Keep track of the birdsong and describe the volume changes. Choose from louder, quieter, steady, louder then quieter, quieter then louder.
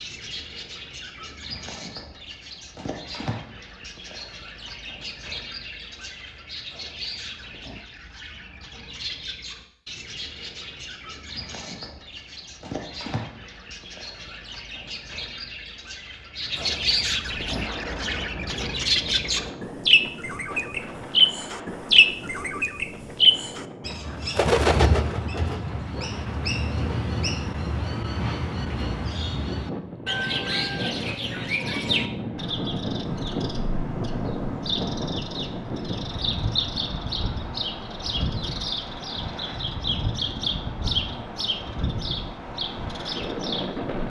louder then quieter.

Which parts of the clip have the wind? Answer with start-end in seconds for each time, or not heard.
17.4-44.0.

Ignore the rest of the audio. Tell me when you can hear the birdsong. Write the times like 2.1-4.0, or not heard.
0.0-44.0.